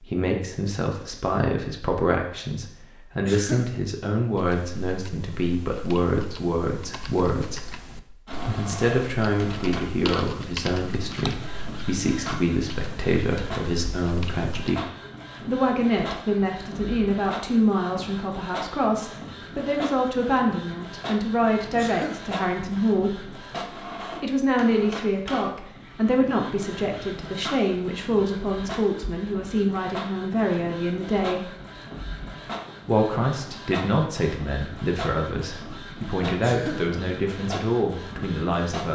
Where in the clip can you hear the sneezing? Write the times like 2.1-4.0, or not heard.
3.2-3.7, 21.8-22.2, 36.4-36.9.